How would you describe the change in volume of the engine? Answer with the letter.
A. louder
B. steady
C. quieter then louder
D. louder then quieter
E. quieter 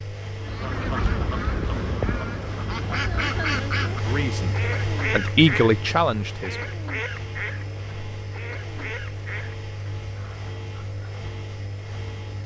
D.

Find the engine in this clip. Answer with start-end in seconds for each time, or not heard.
0.0-12.4.